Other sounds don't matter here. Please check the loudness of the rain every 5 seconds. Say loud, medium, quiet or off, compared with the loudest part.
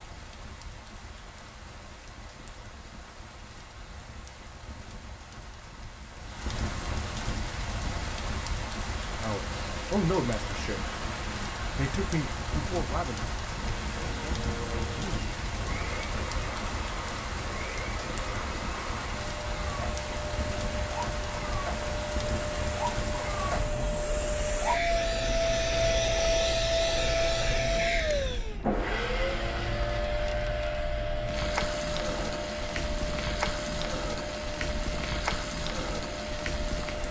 quiet, loud, loud, loud, loud, medium, loud, loud.